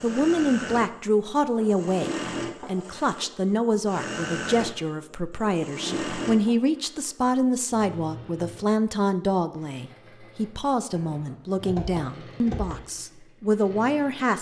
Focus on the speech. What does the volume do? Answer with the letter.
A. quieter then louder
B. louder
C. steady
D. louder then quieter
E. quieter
C.